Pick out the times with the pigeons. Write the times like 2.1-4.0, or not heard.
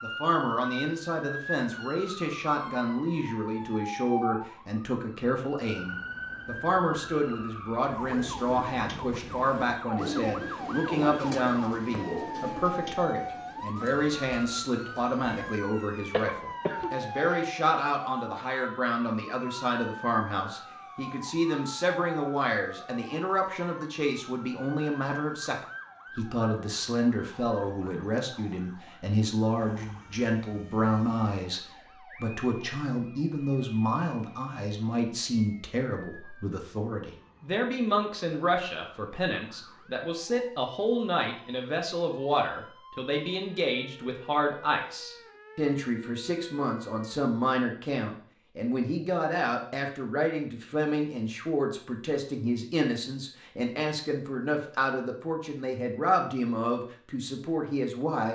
8.1-15.6.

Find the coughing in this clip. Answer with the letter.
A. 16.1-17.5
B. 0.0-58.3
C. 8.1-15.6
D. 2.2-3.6
A.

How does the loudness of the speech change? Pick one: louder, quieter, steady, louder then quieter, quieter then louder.
steady.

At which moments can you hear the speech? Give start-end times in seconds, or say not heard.
0.0-58.3.